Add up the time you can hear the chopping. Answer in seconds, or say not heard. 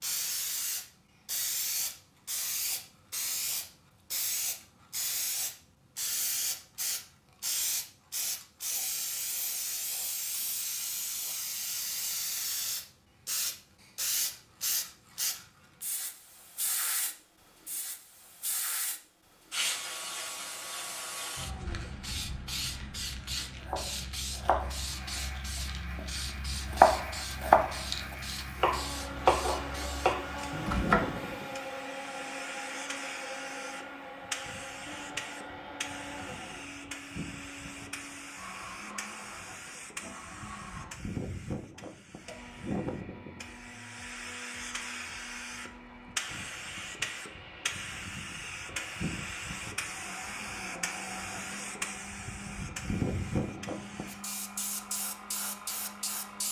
6 s.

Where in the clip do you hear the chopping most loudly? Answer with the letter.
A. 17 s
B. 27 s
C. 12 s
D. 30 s
B.